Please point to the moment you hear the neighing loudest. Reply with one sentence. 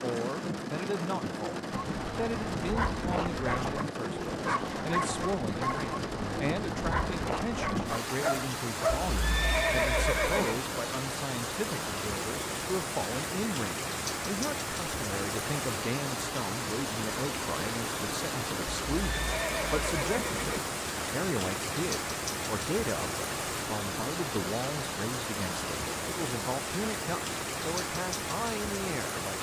The loudest moment of the neighing is at 10 seconds.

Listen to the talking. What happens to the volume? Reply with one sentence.
The loudness of the talking stays about the same.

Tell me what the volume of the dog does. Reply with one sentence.
The loudness of the dog stays about the same.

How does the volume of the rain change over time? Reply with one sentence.
The loudness of the rain stays about the same.